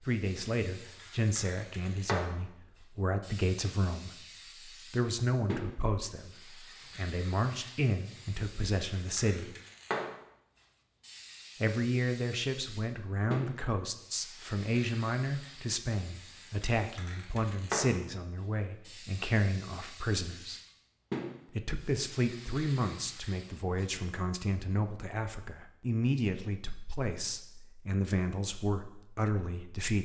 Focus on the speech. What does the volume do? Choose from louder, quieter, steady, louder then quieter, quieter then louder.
steady.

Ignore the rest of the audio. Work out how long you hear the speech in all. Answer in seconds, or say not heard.
27 s.